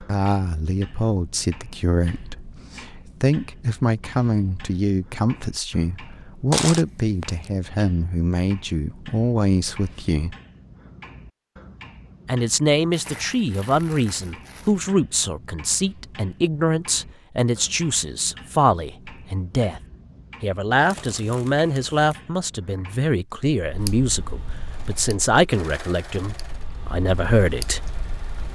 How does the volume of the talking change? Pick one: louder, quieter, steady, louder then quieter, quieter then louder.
steady.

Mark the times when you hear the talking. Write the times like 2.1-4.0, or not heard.
0.0-10.3, 12.2-19.8, 20.4-27.9.